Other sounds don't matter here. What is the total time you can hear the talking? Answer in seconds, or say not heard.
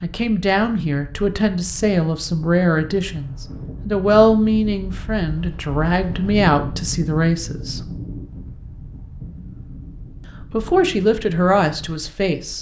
10 s.